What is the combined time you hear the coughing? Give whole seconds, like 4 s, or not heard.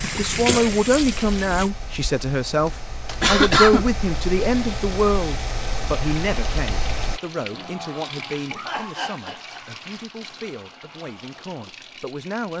3 s.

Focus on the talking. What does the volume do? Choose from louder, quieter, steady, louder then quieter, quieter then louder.
quieter.